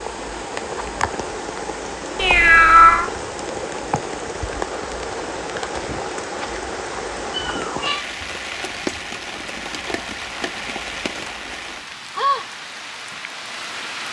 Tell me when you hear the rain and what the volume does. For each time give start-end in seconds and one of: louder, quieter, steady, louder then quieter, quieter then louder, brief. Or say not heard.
0.0-14.0 steady.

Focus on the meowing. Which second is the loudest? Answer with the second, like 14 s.
3 s.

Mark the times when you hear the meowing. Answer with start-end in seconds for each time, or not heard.
2.1-3.1, 7.3-8.1.